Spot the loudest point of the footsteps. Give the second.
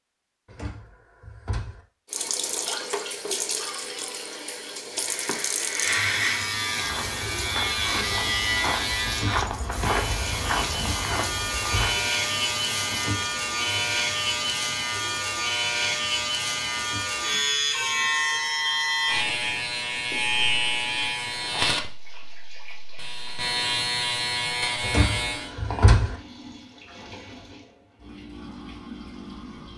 10 s.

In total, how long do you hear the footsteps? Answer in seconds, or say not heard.
5 s.